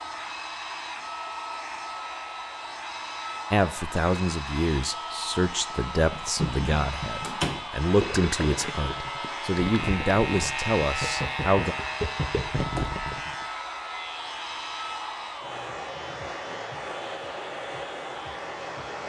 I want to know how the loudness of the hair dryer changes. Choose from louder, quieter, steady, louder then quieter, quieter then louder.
steady.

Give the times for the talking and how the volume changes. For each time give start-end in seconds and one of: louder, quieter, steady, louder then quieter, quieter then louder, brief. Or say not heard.
3.5-11.8 steady.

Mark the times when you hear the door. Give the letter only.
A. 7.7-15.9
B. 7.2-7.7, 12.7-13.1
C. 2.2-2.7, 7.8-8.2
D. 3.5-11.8
B.